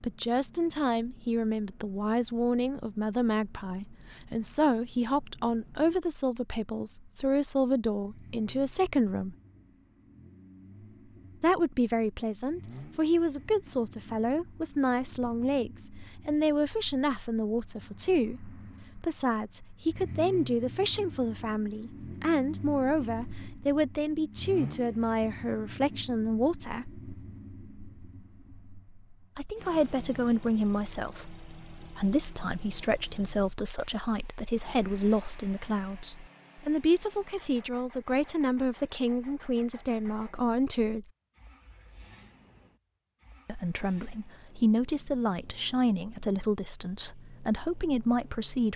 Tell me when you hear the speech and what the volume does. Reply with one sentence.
The speech can be heard from 0.0 to 9.3 s, at a steady volume; from 11.4 to 26.9 s, at a steady volume; from 29.4 to 41.0 s, at a steady volume; and from 43.5 to 48.7 s, getting quieter then louder.